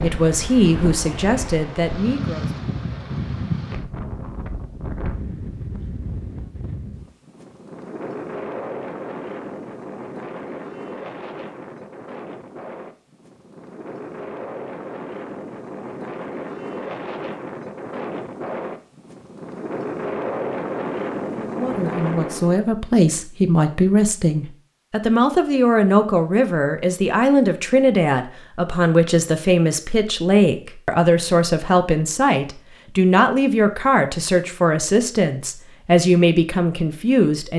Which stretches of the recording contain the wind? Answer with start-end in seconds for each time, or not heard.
0.0-22.6.